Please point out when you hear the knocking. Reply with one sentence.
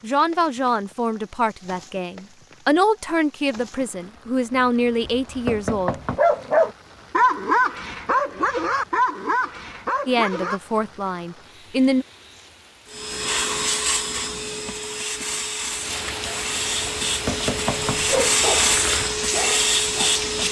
You can hear the knocking from 5.0 to 6.2 s and from 17.1 to 18.0 s.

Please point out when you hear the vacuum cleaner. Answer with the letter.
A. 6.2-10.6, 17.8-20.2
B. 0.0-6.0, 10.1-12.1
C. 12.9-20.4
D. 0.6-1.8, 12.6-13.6
C.